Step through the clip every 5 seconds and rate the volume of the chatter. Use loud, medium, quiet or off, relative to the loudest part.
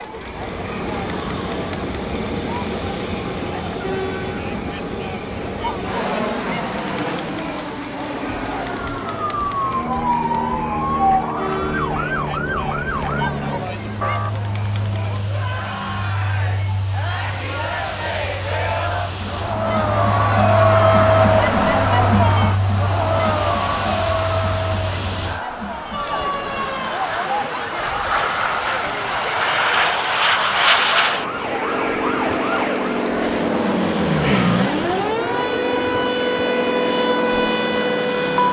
quiet, quiet, quiet, medium, loud, quiet, quiet, quiet.